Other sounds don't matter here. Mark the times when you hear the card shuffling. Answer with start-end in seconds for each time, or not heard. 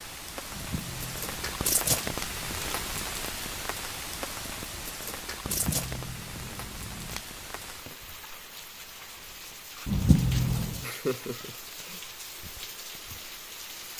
0.5-3.0, 5.4-7.2, 9.8-10.8.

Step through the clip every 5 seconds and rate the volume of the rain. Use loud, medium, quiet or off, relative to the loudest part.
loud, medium, medium.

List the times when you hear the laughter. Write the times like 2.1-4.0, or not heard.
10.8-12.0.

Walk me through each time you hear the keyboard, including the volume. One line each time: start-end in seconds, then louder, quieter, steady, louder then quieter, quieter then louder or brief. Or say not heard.
not heard.